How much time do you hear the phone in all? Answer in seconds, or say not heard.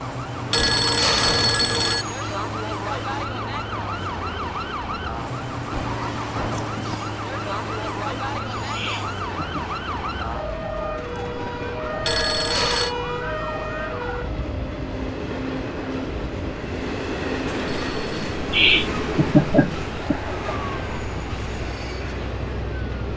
3 s.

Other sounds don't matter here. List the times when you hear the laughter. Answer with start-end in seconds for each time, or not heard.
8.7-9.7, 18.5-20.3.